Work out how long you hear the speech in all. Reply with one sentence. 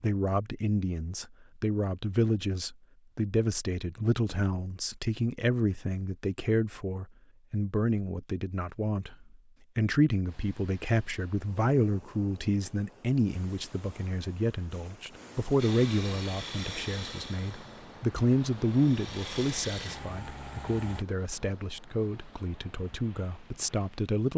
The speech can be heard for 24 seconds in total.